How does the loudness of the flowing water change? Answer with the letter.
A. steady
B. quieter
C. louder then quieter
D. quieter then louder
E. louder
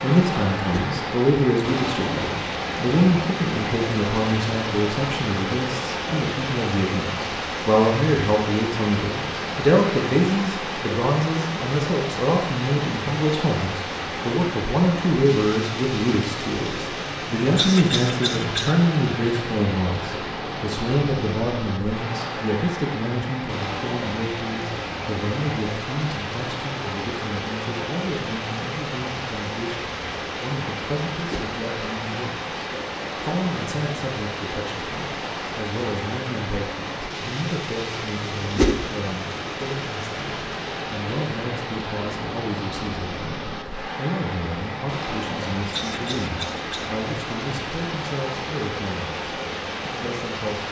A.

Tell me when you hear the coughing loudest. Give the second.
18 s.